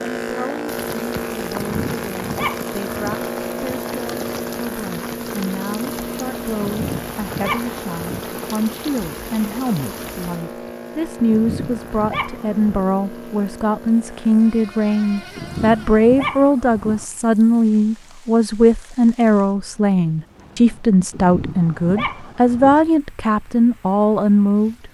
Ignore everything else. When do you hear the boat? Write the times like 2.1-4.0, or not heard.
0.0-16.1.